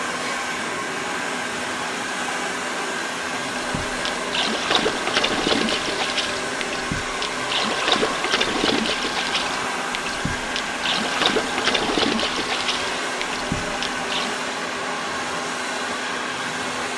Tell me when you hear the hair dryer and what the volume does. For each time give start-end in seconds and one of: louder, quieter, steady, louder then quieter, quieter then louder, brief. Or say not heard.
0.0-16.9 steady.